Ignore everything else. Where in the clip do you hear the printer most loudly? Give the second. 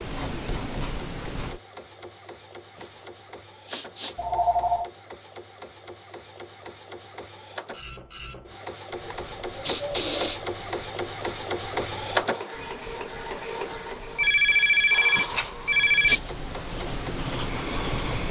12 s.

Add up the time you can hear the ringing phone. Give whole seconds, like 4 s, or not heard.
3 s.